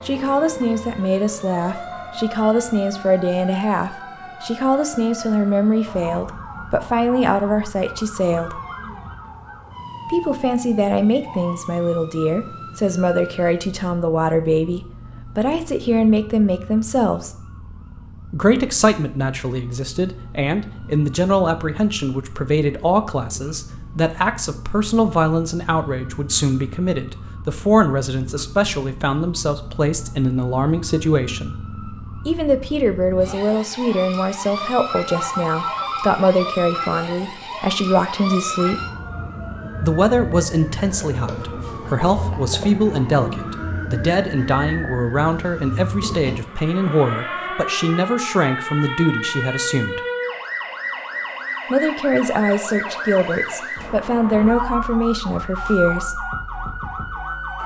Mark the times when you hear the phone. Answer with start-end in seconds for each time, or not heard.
35.1-36.2.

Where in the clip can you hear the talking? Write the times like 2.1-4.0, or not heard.
0.1-8.6, 10.1-17.3, 18.3-31.6, 32.2-38.8, 39.8-50.0, 51.7-56.2.